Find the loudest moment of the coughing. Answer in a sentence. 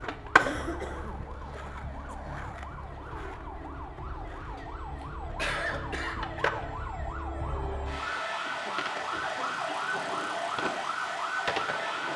The volume of the coughing peaks at 6 seconds.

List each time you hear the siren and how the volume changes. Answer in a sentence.
The siren can be heard from 0.0 to 12.1 s, getting louder.